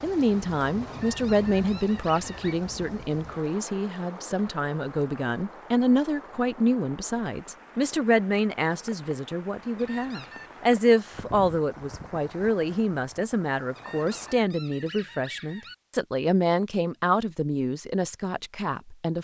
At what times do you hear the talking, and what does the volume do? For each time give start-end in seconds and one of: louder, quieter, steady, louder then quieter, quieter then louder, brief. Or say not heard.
0.0-19.1 steady.